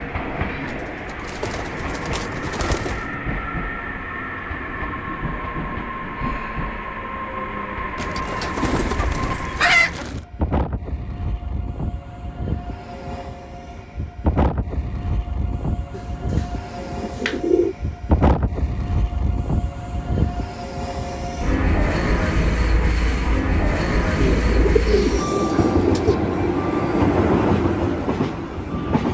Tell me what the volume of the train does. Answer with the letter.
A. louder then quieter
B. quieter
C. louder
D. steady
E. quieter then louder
C.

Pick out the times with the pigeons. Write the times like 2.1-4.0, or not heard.
0.7-3.0, 8.0-10.2, 15.9-17.8, 24.1-26.1.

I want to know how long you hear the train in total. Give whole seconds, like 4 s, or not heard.
29 s.